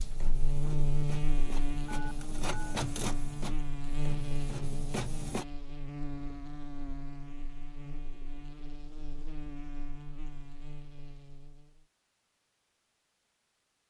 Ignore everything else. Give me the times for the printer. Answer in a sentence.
You can hear the printer from 0.0 to 5.5 s.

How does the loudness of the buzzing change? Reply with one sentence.
The volume of the buzzing goes down.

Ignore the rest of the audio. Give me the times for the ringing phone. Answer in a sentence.
You can hear the ringing phone from 1.9 to 2.8 s.